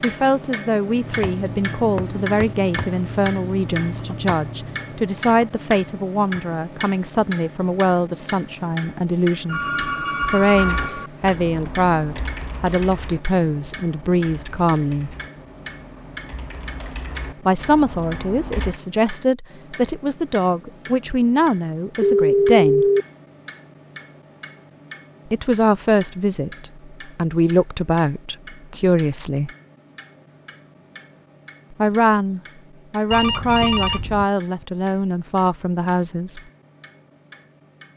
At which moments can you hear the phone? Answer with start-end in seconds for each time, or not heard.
9.4-11.1, 22.0-23.1, 33.1-34.2.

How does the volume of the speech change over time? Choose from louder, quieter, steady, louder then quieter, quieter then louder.
steady.